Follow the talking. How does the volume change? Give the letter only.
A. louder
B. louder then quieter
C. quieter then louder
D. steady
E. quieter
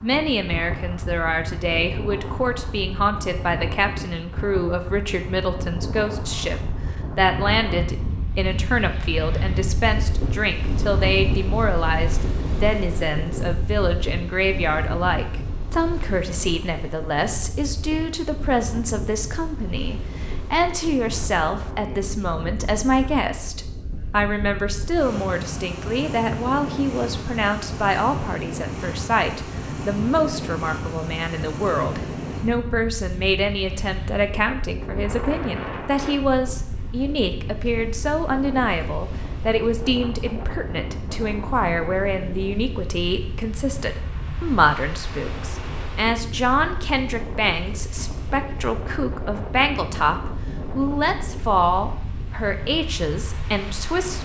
D.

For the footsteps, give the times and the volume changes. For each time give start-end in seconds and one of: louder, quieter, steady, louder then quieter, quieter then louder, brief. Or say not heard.
not heard.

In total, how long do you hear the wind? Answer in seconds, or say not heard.
54 s.